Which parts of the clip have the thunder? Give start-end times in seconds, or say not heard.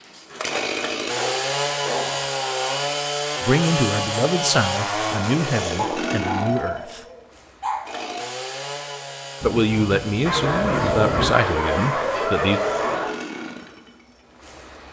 9.4-11.3.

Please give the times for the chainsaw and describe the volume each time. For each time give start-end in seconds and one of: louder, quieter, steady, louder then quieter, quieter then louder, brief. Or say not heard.
0.0-14.8 quieter.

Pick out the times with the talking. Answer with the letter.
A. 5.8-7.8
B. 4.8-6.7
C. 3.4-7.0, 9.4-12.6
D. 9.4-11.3
C.